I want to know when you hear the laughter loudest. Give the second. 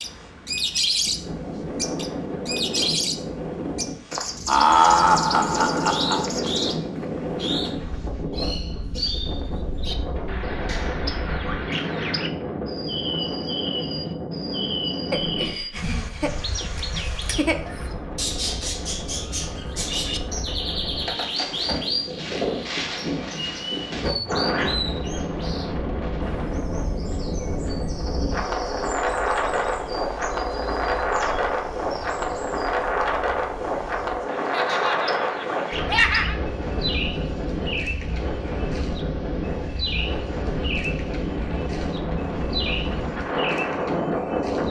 5 s.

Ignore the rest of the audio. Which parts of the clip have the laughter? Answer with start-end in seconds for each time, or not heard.
4.5-6.2, 15.1-17.6, 34.5-36.4.